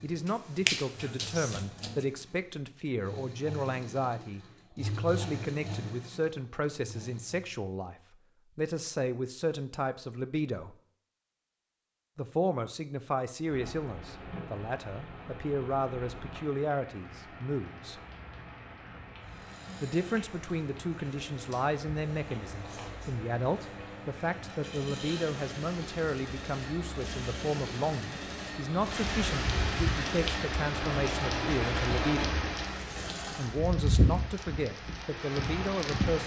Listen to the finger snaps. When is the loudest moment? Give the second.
1 s.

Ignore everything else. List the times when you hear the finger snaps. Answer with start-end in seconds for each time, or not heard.
0.2-2.0.